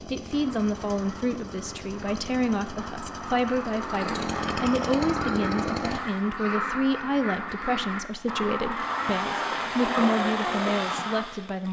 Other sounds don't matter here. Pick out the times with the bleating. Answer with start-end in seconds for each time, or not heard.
not heard.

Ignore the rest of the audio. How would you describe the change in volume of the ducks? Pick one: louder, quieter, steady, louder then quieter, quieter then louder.
louder.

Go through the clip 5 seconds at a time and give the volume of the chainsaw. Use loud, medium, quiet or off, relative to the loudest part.
medium, loud, loud.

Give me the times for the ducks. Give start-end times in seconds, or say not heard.
0.3-11.2.